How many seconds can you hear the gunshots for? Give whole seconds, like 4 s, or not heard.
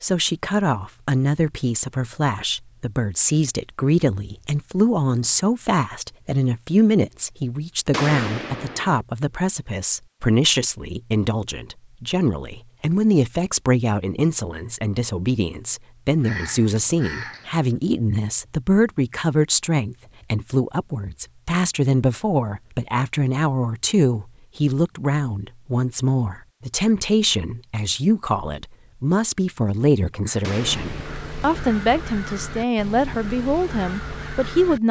2 s.